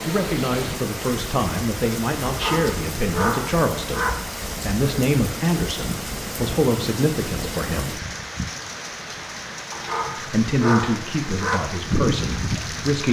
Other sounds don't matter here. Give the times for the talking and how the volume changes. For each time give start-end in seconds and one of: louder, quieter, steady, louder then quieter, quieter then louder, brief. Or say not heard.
0.1-8.0 steady
10.2-13.0 brief.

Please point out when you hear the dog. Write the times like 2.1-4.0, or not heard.
2.2-4.1, 9.7-11.6.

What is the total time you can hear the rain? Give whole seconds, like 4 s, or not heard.
13 s.